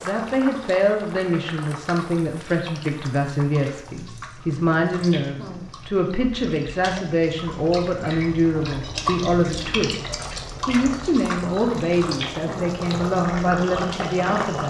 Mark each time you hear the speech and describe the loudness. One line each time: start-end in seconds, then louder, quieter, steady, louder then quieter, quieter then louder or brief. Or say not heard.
0.0-14.6 steady.